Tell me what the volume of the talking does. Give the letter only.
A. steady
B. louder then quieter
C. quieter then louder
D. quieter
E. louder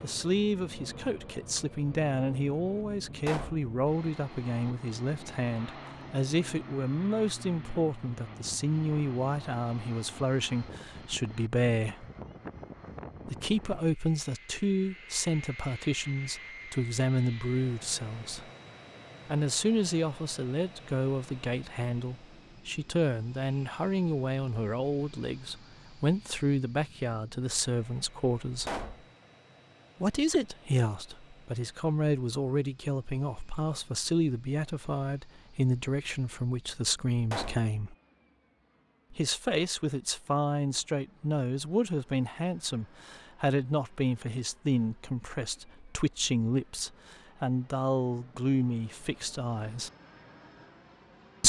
A.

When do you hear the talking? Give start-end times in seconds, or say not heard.
0.0-12.1, 13.2-18.4, 19.2-28.8, 30.0-38.0, 39.1-49.9.